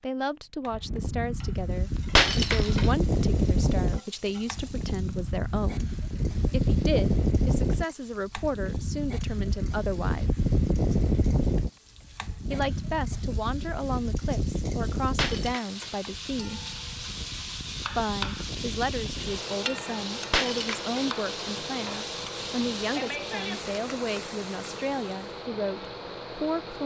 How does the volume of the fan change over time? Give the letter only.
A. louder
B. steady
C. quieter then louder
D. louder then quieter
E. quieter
E.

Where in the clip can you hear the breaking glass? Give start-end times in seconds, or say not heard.
2.1-2.9, 15.2-15.9, 20.3-20.9.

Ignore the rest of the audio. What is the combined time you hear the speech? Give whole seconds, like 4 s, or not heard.
23 s.